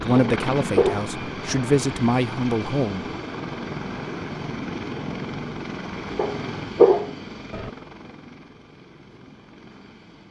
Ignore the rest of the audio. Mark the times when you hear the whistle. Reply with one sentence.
The whistle can't be heard in this clip.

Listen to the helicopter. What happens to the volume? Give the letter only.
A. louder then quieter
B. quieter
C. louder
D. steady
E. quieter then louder
B.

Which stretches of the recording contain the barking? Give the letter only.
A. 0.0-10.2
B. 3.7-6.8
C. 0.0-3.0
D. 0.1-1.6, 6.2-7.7
D.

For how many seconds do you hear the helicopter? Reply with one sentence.
You can hear the helicopter for 10 seconds altogether.